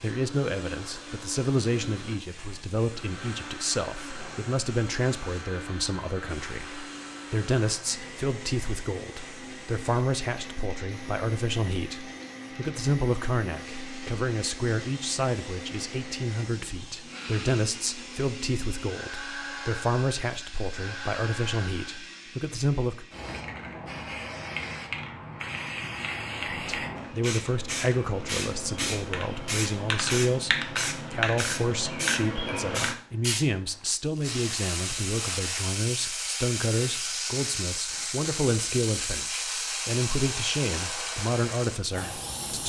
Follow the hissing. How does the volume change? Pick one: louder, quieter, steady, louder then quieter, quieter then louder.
louder.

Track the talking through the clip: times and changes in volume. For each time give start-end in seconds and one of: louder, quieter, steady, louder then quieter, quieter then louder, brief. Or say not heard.
0.0-23.1 steady
26.5-42.6 steady.